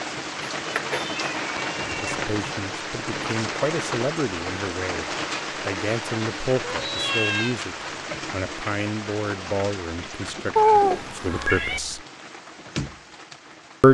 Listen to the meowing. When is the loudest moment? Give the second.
11 s.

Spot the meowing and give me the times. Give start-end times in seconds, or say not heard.
0.7-2.1, 6.6-7.5, 10.6-11.8.